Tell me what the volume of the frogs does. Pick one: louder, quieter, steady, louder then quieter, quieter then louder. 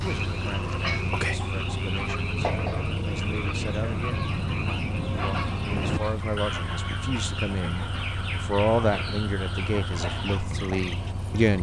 quieter.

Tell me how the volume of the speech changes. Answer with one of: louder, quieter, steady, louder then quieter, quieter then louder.
louder.